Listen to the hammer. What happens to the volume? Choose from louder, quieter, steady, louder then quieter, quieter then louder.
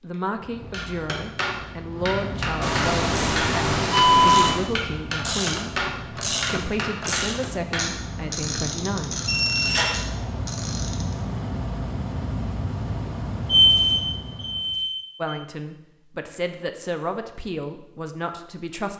steady.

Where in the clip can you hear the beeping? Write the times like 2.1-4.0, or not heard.
2.6-4.6, 9.2-9.9, 13.4-15.3.